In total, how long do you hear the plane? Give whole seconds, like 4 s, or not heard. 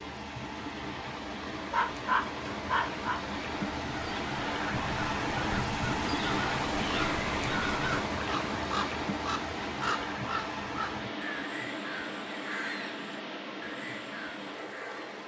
not heard.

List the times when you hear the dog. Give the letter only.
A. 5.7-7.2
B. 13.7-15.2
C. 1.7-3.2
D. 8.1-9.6
C.